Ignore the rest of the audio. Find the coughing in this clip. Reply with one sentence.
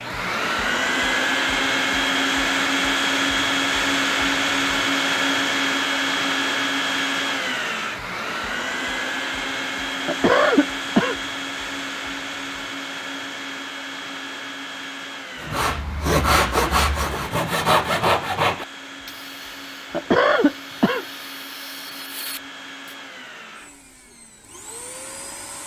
You can hear the coughing from 10.1 to 11.2 s and from 19.9 to 21.1 s.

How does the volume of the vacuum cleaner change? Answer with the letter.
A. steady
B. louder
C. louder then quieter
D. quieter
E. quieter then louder
D.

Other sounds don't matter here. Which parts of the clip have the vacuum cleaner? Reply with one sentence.
The vacuum cleaner can be heard from 0.0 to 25.6 s.